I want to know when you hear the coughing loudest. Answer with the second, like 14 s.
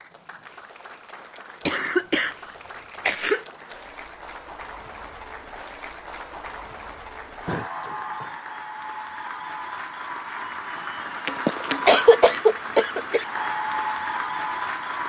12 s.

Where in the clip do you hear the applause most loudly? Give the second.
14 s.